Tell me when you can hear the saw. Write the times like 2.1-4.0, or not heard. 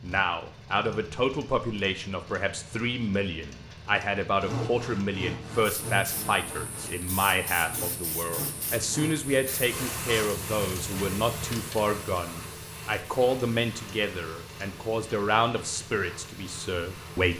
4.3-10.4.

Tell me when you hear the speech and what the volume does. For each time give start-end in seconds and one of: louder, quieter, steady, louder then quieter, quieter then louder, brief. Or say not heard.
0.0-17.3 steady.